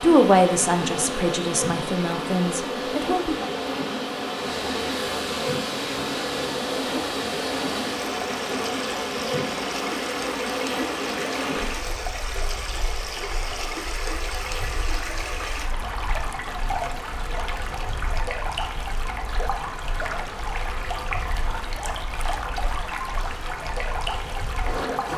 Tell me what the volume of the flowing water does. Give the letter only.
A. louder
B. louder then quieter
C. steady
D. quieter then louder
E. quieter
C.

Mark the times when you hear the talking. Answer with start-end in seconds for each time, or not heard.
0.0-3.5.